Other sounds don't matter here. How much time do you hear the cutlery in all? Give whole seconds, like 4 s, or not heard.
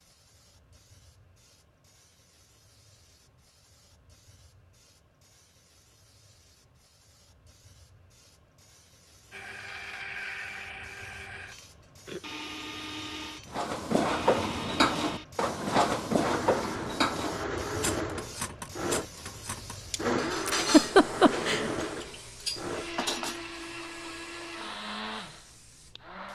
10 s.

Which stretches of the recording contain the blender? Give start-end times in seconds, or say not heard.
9.3-26.3.